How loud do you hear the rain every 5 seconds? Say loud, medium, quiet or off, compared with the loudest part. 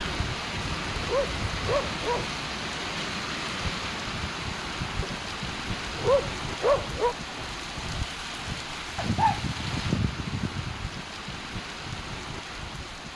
loud, loud, medium.